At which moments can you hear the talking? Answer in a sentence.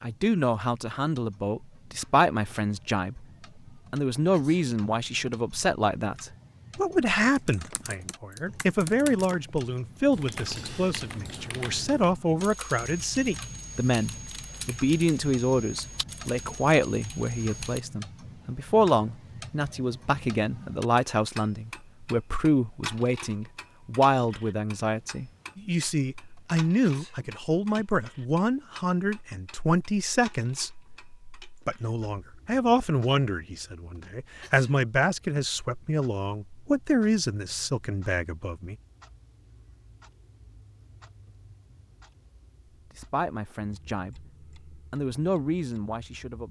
You can hear the talking from 0.0 to 3.2 s, from 3.9 to 38.8 s, from 42.9 to 44.2 s and from 44.9 to 46.4 s.